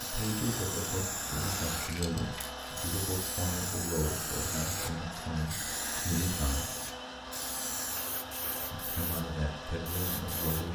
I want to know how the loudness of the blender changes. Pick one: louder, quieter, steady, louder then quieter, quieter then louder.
steady.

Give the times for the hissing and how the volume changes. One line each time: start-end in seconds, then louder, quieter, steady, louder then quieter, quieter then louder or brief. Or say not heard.
0.0-10.7 quieter.